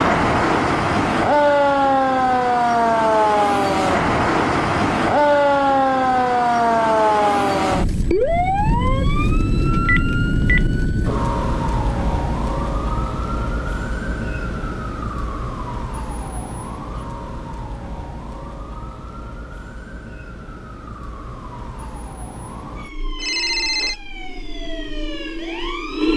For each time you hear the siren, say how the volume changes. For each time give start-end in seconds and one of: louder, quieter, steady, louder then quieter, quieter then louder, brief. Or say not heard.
0.0-26.1 quieter.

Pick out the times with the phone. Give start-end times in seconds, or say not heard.
9.8-10.7, 23.1-23.9.